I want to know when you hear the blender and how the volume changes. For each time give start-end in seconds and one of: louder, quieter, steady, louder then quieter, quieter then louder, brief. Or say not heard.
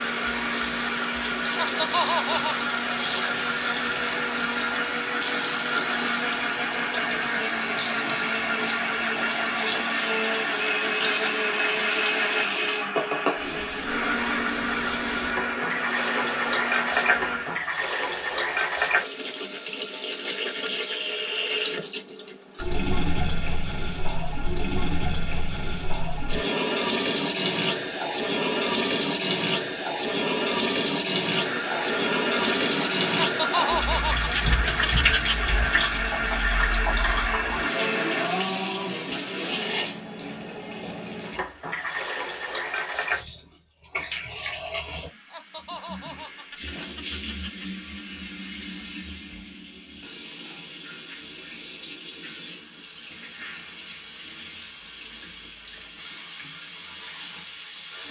0.0-17.6 steady
31.2-38.5 steady.